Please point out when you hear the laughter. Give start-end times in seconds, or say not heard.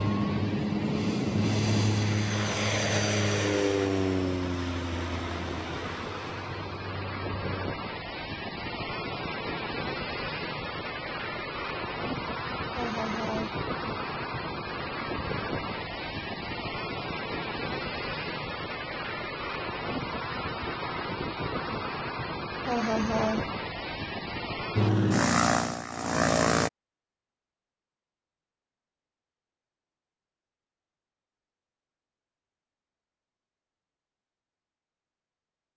12.7-13.6, 22.6-23.5.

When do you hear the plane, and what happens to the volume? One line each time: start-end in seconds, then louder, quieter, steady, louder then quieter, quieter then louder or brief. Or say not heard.
0.0-7.7 quieter
24.8-26.7 brief.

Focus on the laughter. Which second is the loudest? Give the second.
23 s.